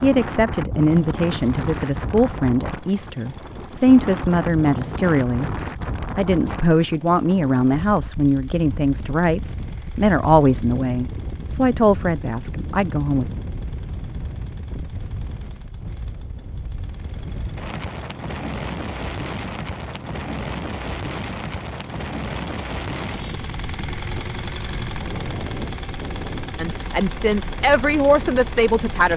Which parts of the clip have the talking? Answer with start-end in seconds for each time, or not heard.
0.0-5.5, 6.2-13.3, 26.6-29.1.